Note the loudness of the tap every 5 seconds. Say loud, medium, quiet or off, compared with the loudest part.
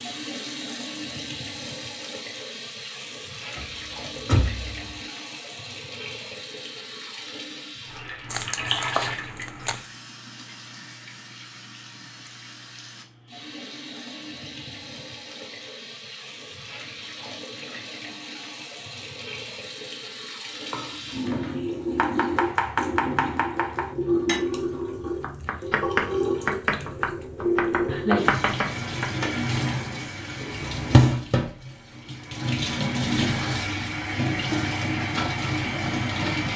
medium, medium, quiet, quiet, loud, loud, loud, loud.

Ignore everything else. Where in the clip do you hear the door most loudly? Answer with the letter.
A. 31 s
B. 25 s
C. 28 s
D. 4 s
D.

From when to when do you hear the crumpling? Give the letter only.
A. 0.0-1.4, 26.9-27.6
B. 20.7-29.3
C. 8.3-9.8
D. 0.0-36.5
C.